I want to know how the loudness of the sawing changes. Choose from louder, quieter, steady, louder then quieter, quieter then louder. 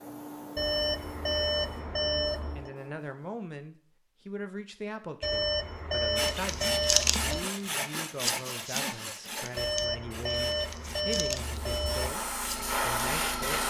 quieter.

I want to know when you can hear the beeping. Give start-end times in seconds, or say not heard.
0.6-2.7, 5.2-7.5, 9.6-12.2.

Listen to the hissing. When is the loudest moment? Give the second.
13 s.